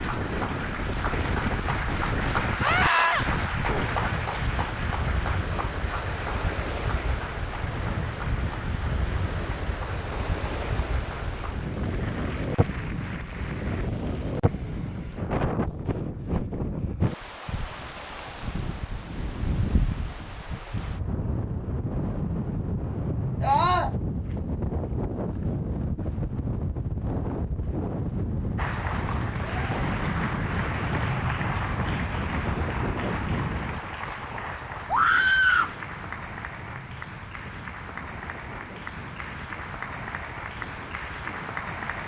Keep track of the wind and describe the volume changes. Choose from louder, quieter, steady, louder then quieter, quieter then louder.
quieter.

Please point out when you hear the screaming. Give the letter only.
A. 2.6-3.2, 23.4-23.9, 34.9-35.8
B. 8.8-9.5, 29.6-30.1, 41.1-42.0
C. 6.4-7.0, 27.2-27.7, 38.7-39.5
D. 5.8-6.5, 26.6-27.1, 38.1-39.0
A.